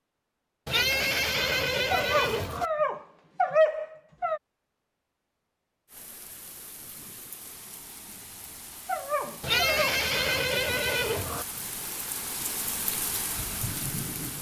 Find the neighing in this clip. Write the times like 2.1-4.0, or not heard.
0.7-2.6, 9.4-11.4.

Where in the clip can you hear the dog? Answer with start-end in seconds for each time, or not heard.
1.9-4.4, 8.8-10.0.